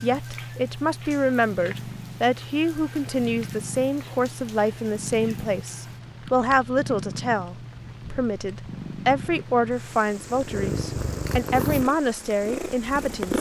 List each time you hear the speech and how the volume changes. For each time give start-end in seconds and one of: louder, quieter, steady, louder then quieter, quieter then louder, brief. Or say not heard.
0.0-13.3 steady.